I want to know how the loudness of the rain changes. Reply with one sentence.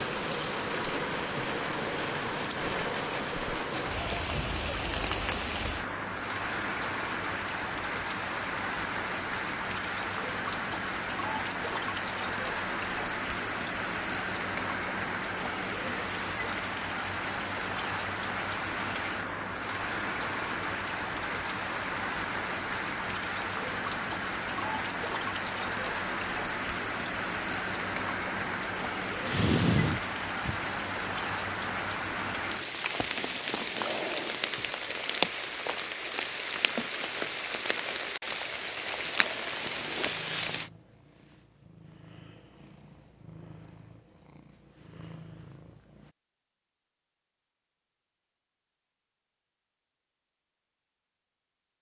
The loudness of the rain stays about the same.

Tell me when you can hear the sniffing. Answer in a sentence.
You can hear the sniffing from 29.2 to 30.6 s.